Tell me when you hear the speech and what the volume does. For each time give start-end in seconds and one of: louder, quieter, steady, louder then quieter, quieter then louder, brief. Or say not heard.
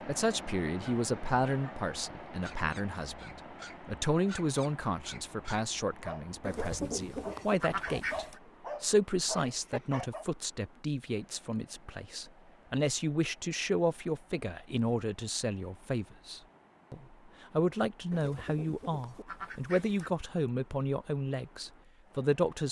0.1-22.6 steady.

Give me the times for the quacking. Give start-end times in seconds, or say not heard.
6.5-8.4, 18.1-20.1.